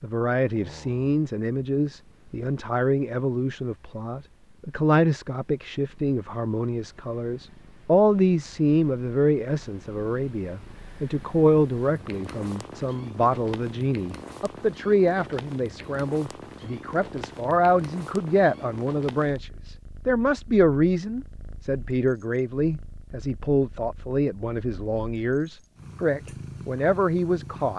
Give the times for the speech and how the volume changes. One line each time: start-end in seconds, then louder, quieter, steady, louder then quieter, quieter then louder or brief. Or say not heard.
0.0-27.7 steady.